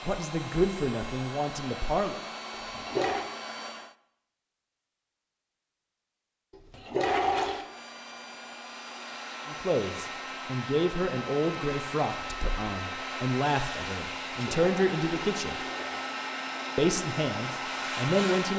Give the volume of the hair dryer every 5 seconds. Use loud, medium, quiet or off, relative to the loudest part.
medium, medium, loud, loud.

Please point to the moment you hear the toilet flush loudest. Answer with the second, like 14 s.
7 s.